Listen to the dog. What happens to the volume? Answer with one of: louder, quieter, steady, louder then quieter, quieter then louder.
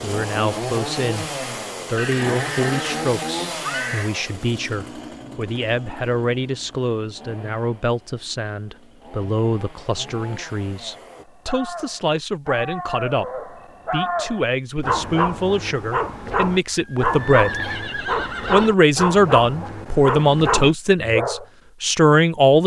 louder.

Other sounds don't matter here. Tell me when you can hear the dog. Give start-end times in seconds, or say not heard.
11.1-21.4.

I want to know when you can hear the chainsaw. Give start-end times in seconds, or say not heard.
0.0-11.2.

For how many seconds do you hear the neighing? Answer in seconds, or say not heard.
4 s.